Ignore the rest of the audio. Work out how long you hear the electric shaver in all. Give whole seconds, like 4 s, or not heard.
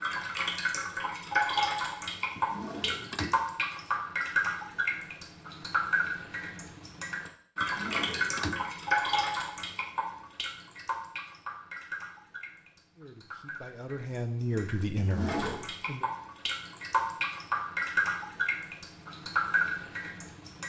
not heard.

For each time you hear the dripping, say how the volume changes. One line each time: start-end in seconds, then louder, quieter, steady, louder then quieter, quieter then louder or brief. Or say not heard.
0.0-20.6 quieter then louder.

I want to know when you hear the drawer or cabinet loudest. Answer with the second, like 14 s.
15 s.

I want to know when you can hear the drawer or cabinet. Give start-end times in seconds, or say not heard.
2.4-3.4, 7.6-8.6, 14.9-15.7.